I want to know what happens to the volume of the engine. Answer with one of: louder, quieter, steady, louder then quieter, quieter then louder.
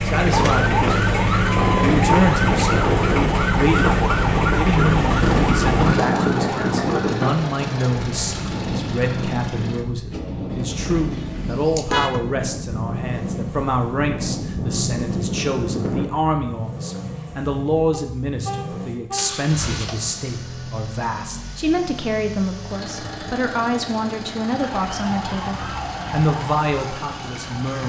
quieter.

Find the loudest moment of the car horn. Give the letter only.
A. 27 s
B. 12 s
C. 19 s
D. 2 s
B.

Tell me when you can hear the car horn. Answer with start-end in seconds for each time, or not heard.
11.1-12.2, 17.9-19.4.